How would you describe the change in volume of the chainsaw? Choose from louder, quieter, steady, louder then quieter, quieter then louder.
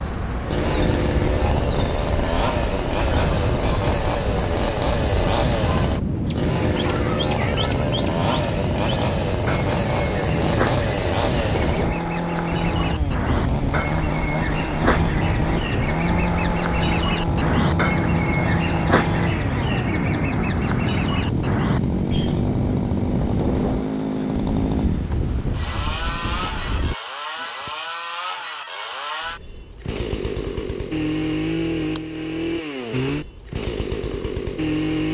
steady.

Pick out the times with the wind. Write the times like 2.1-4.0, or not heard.
0.0-26.9.